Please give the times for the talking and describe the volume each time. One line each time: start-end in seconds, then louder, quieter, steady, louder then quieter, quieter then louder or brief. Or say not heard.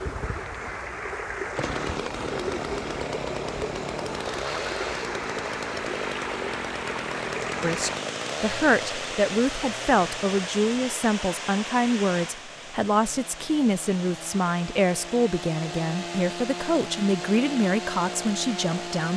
7.6-19.1 steady.